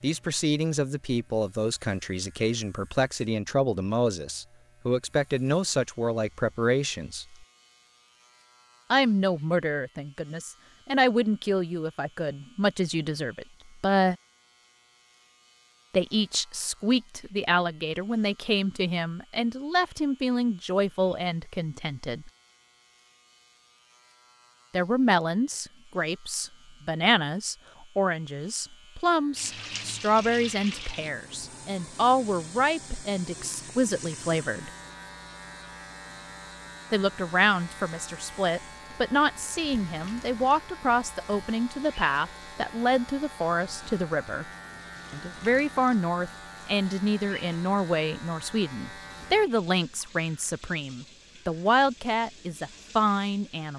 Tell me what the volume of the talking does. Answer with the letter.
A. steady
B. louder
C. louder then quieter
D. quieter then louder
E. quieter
A.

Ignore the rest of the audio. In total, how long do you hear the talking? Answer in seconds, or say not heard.
45 s.